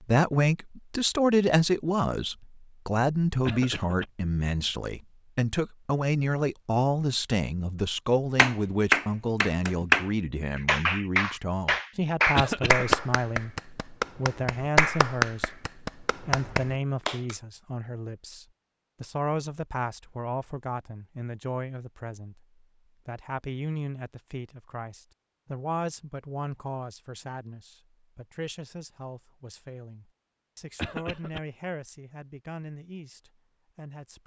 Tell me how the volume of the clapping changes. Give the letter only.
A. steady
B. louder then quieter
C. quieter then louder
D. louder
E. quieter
E.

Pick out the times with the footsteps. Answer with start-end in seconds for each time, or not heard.
not heard.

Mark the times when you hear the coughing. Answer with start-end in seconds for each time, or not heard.
3.5-4.0, 12.3-12.9, 30.8-31.4.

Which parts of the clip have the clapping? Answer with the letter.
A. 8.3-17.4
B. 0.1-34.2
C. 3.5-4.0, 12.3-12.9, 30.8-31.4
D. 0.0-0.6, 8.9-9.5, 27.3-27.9
A.